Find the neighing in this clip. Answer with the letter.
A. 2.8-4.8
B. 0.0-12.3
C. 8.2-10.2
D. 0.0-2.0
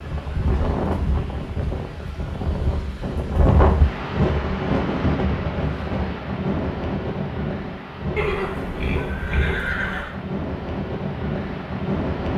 C.